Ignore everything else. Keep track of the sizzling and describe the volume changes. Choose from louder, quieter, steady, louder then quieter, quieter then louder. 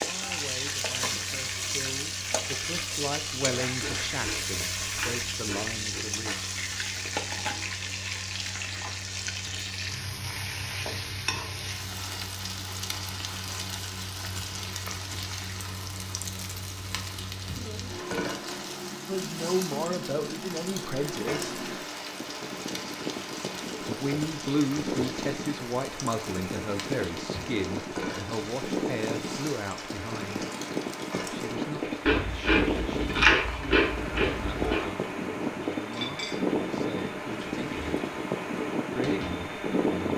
quieter.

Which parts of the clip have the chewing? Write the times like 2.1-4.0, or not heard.
3.8-6.0, 32.0-34.9.